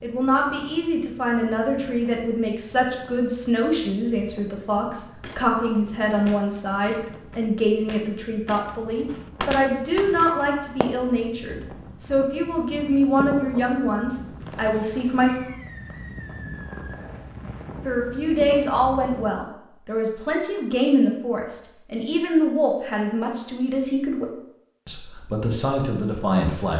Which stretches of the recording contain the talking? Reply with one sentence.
You can hear the talking from 0.0 to 15.4 s and from 17.9 to 26.7 s.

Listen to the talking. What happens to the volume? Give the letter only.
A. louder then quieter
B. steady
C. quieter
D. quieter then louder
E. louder
B.